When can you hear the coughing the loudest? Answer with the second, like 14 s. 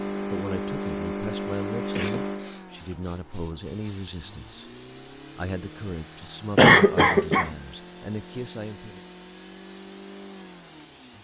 7 s.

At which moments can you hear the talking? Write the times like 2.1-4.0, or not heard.
0.3-9.0.